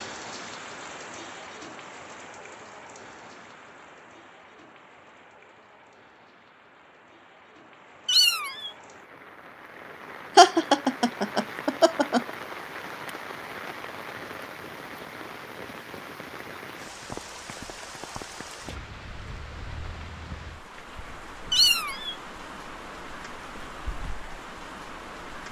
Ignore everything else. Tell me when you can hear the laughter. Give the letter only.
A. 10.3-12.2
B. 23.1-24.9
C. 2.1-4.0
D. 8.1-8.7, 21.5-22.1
A.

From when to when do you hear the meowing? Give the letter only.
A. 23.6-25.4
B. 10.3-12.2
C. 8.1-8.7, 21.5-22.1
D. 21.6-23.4
C.